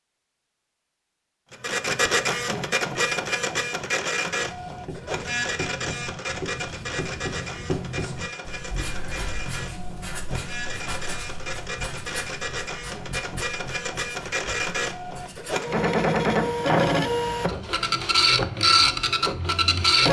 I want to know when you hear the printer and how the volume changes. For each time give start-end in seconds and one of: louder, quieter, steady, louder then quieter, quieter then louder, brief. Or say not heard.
1.5-20.0 quieter then louder.